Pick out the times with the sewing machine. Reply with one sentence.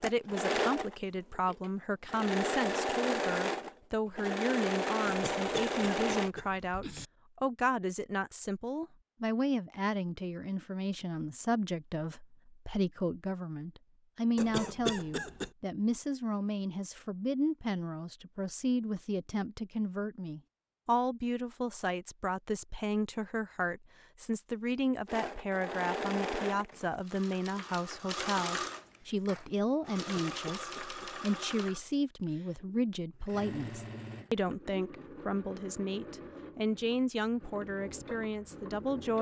You can hear the sewing machine from 0.0 to 6.3 s and from 25.1 to 39.1 s.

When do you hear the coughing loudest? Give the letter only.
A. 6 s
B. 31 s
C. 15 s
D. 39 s
C.